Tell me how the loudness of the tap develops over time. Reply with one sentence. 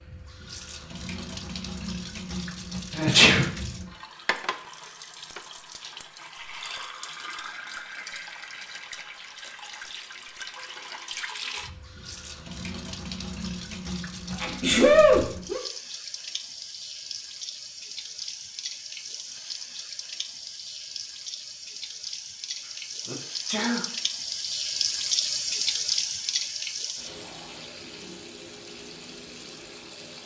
The loudness of the tap goes up.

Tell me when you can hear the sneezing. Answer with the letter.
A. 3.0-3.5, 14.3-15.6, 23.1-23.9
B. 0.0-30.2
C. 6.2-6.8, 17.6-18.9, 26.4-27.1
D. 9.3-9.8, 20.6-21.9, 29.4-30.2
A.